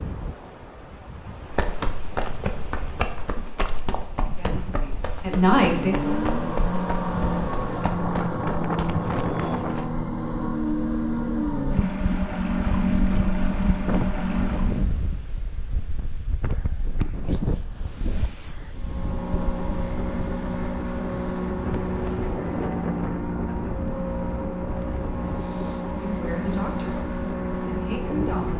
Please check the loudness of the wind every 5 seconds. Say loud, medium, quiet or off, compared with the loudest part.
medium, loud, loud, loud, loud, medium.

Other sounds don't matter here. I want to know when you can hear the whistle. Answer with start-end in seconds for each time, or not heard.
not heard.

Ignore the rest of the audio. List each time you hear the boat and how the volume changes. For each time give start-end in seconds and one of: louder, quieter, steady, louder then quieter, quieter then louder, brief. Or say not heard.
5.5-14.9 steady
18.7-28.5 steady.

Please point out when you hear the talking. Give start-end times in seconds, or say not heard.
4.2-6.2, 25.9-28.5.